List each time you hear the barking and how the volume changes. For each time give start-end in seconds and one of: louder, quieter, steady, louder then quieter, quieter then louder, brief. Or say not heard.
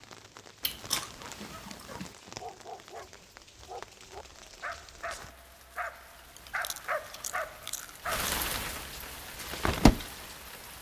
1.4-8.3 louder.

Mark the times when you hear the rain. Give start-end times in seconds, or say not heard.
0.0-10.7.